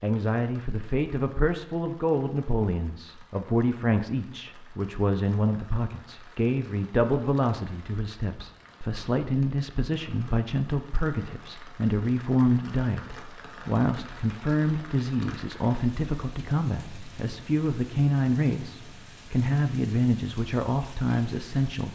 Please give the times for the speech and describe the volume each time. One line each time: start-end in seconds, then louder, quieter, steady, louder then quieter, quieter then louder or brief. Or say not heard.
0.0-21.9 steady.